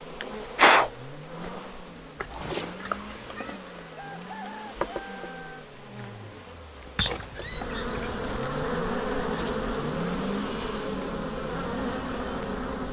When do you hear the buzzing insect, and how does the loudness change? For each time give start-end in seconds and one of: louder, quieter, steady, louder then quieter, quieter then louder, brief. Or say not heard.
0.0-12.8 quieter then louder.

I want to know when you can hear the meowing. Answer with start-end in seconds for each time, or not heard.
2.1-3.6, 7.0-8.2.